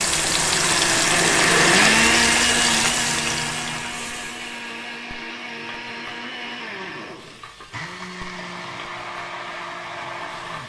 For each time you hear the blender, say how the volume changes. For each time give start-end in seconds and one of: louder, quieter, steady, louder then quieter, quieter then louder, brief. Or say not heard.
0.0-10.6 quieter.